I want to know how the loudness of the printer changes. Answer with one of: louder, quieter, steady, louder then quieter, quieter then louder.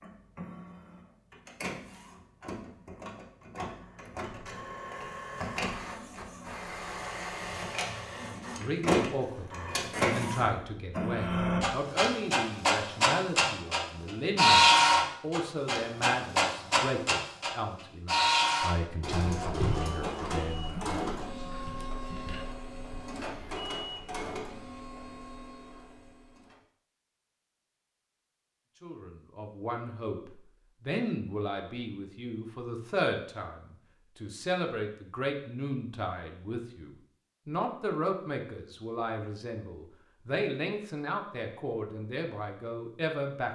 louder then quieter.